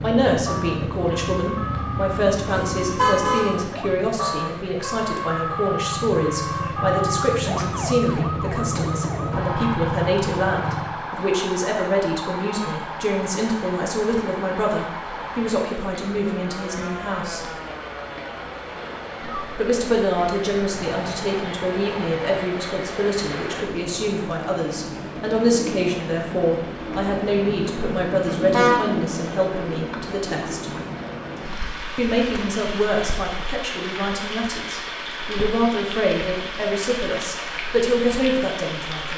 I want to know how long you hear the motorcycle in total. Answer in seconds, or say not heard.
11 s.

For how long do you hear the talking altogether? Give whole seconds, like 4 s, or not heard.
36 s.